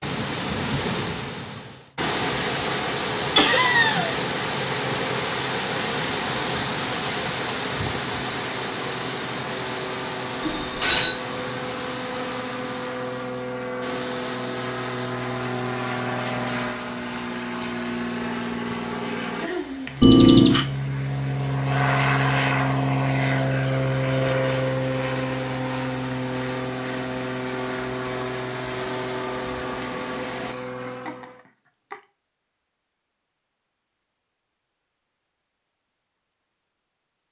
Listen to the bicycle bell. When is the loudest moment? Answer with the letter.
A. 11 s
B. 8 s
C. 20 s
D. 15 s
C.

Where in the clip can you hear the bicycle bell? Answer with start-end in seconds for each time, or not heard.
10.4-11.2, 20.0-20.6.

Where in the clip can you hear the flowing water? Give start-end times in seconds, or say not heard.
0.0-30.6.